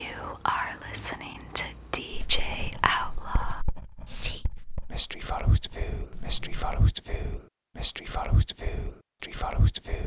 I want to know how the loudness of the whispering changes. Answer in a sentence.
The volume of the whispering goes down.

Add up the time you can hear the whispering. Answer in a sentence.
The whispering can be heard for 10 seconds in total.